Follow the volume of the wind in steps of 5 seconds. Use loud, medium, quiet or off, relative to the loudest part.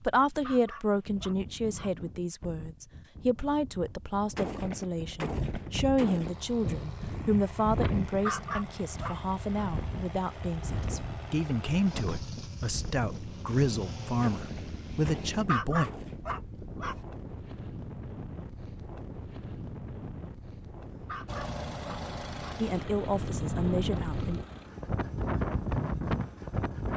quiet, medium, medium, medium, medium, loud.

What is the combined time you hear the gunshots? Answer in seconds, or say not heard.
4 s.